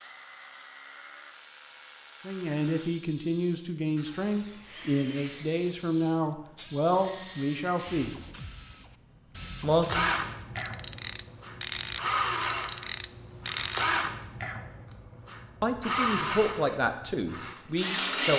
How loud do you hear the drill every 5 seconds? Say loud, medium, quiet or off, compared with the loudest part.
quiet, medium, loud, loud.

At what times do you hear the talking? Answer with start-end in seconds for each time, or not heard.
2.2-8.2, 9.6-10.1, 15.6-18.3.